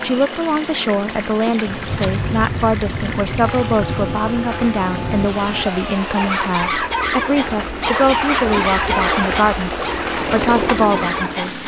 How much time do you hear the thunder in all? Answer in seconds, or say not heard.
4 s.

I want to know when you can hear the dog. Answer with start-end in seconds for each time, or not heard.
6.2-11.5.